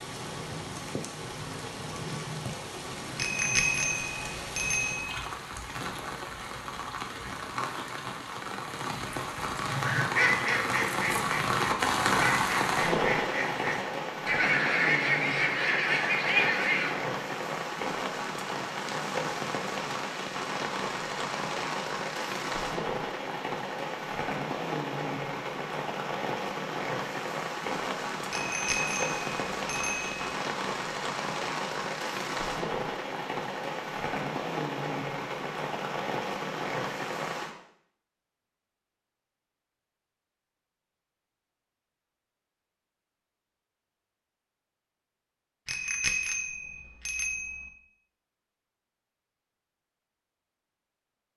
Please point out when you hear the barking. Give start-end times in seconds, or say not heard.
not heard.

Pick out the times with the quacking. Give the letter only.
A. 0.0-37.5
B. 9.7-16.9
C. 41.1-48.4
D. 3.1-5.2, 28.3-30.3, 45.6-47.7
B.